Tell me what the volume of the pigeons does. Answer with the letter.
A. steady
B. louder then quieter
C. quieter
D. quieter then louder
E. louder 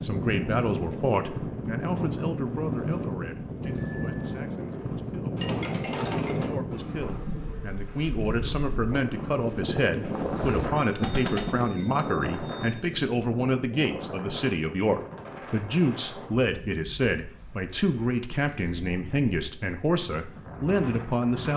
D.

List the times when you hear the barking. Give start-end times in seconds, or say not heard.
not heard.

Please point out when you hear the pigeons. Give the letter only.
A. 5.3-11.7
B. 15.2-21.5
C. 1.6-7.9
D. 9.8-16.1
A.